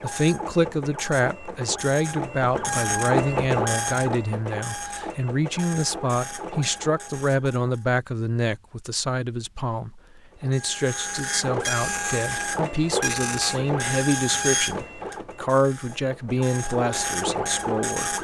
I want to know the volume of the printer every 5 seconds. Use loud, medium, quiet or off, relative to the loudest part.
loud, medium, loud, loud.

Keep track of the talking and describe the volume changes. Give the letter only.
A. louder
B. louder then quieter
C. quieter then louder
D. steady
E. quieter
D.